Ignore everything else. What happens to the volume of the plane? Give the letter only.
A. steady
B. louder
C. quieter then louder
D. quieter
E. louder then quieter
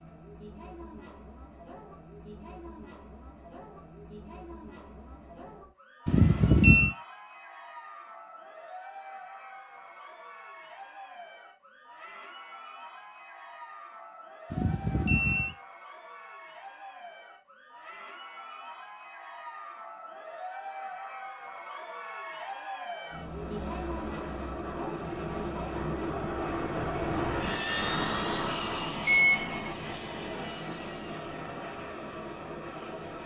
E.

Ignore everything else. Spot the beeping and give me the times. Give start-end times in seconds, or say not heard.
6.0-6.9, 14.5-15.5, 29.1-29.6.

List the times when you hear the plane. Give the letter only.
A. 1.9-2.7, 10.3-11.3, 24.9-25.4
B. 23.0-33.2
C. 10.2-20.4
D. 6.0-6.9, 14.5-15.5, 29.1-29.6
B.